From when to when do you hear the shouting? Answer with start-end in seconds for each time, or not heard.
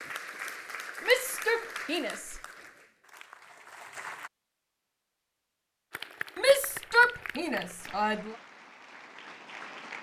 1.1-2.4, 6.3-8.3.